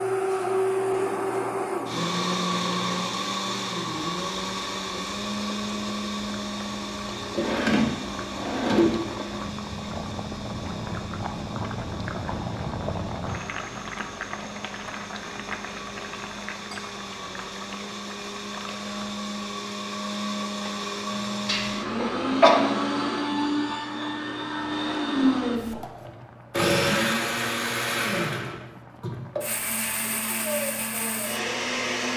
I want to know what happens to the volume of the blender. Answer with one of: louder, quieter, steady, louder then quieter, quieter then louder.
quieter then louder.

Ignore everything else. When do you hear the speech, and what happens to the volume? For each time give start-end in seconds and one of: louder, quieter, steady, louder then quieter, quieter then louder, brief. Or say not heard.
not heard.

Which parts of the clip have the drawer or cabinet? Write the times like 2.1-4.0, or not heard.
7.3-8.9.